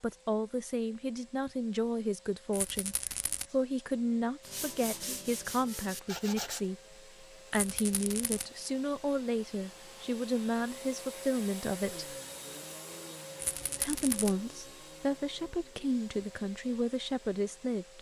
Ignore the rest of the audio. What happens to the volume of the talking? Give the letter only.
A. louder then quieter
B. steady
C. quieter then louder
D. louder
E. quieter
B.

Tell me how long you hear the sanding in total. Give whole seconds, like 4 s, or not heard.
2 s.